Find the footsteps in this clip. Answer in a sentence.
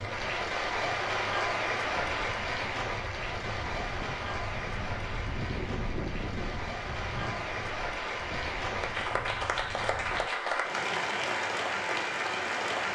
The footsteps can't be heard in this clip.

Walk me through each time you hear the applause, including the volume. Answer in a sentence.
The applause can be heard from 0.0 to 12.8 s, getting quieter then louder.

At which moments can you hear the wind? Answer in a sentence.
You can hear the wind from 0.0 to 10.3 s.